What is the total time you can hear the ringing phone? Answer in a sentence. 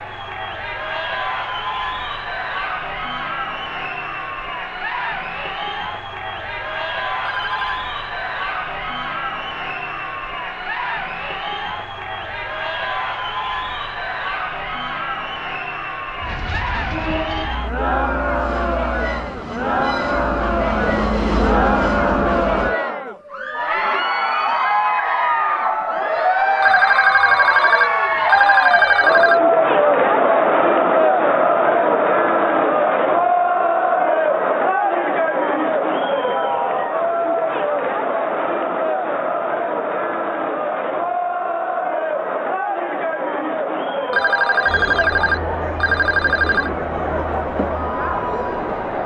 The ringing phone can be heard for 6 seconds in total.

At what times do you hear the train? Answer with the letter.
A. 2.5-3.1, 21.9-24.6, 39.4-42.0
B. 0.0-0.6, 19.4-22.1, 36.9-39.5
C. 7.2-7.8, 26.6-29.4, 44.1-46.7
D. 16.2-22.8
D.